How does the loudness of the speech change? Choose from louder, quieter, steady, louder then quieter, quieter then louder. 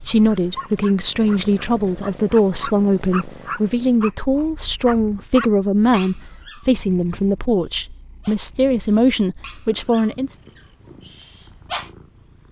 steady.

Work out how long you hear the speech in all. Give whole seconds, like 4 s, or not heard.
10 s.